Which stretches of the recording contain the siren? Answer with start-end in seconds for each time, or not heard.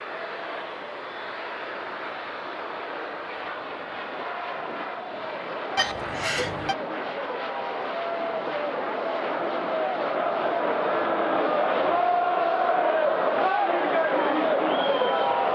not heard.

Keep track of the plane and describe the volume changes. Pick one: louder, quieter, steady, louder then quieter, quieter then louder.
steady.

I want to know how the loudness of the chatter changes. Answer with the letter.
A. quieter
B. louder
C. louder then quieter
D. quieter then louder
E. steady
B.